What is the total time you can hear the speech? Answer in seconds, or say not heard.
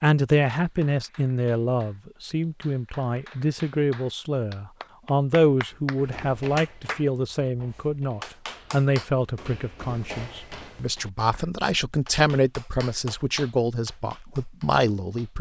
15 s.